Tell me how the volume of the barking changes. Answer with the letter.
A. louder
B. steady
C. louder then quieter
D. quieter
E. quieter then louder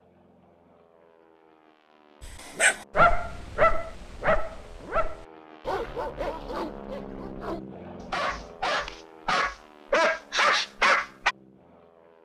E.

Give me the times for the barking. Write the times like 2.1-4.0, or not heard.
2.2-11.3.